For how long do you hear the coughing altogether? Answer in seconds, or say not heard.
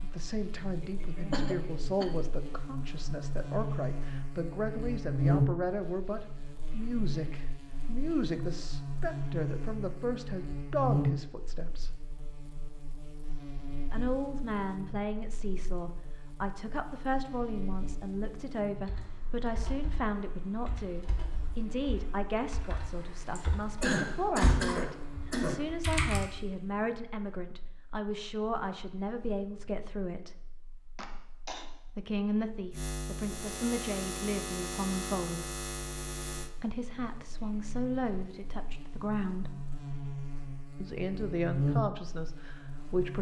4 s.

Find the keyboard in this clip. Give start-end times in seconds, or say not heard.
18.8-26.2.